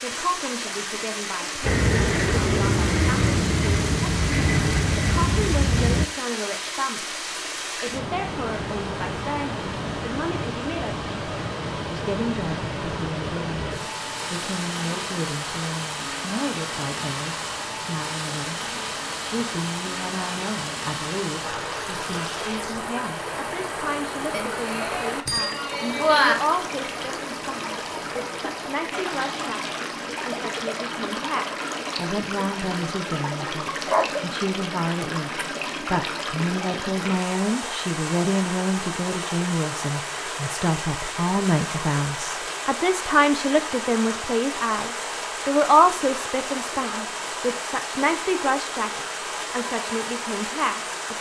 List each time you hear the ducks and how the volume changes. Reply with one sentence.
The ducks can't be heard in this clip.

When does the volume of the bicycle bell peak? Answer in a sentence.
The loudest moment of the bicycle bell is at 26 seconds.